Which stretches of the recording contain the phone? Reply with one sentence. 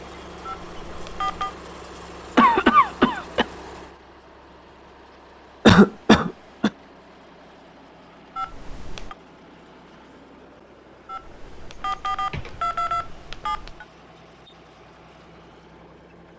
You can hear the phone from 0.5 to 1.6 s, from 8.3 to 9.2 s and from 11.1 to 13.8 s.